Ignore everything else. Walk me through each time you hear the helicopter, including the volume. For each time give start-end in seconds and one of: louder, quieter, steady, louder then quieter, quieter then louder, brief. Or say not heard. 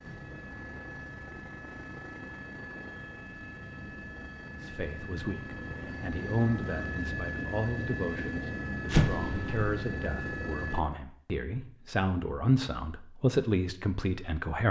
0.0-10.8 louder.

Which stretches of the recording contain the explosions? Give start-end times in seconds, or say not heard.
8.9-9.7.